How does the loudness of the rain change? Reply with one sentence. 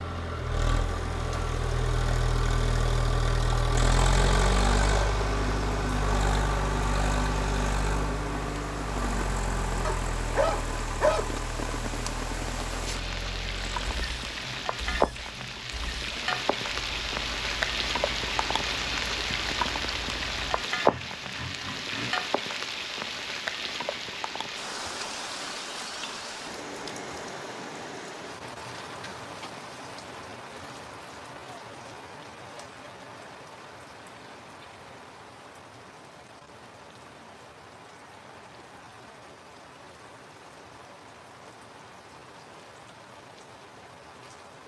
The loudness of the rain goes up, then down.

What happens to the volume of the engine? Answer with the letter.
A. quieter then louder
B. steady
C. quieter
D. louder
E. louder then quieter
C.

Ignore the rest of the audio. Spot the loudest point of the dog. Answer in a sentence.
The volume of the dog peaks at 11 seconds.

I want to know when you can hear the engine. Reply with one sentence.
You can hear the engine from 0.0 to 22.1 s.